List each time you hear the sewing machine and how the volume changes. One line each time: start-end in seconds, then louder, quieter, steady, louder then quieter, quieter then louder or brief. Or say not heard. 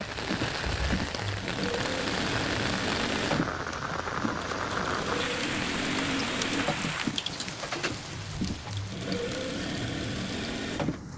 0.0-11.1 steady.